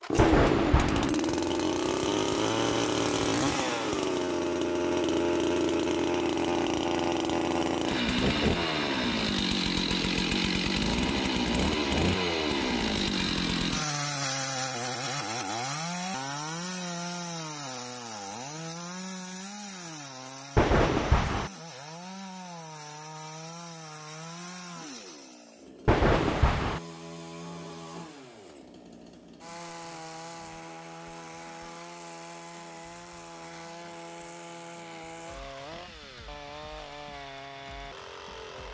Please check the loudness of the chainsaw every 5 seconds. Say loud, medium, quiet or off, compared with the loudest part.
loud, loud, loud, medium, quiet, quiet, quiet, quiet.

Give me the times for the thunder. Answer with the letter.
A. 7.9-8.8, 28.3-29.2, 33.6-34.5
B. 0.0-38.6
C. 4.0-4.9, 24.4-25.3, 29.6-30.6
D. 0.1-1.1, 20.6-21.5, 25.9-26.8
D.